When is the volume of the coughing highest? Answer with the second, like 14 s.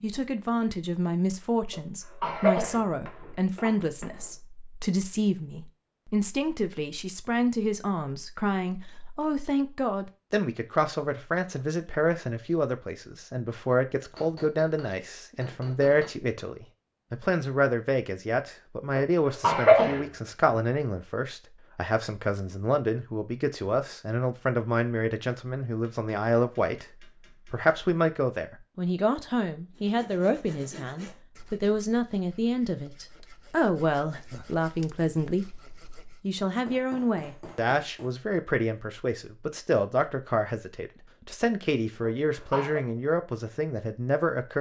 20 s.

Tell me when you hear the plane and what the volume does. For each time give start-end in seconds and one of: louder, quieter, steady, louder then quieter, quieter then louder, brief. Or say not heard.
not heard.